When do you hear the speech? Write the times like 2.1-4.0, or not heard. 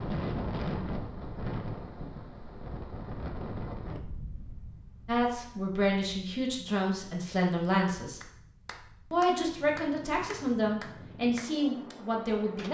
5.0-8.2, 9.1-12.6.